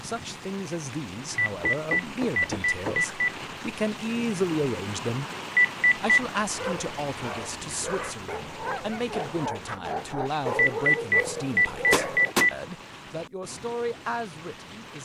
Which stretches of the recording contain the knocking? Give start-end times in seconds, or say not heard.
1.6-3.5, 11.9-12.5.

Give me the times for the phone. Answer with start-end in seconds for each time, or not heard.
1.4-3.3, 5.5-6.2, 10.6-12.6.